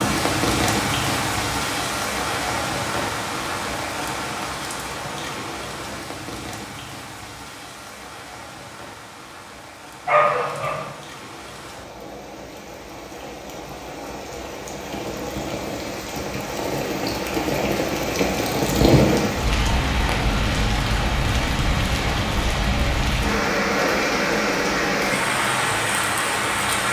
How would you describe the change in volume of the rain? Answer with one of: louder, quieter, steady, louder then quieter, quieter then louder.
quieter then louder.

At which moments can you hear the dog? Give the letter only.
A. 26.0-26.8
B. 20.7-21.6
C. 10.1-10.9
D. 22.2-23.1
C.